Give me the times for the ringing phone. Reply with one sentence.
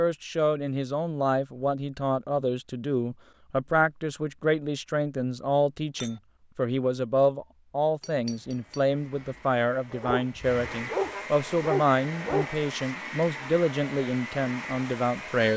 You can't hear the ringing phone here.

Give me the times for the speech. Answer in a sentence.
You can hear the speech from 0.0 to 15.5 s.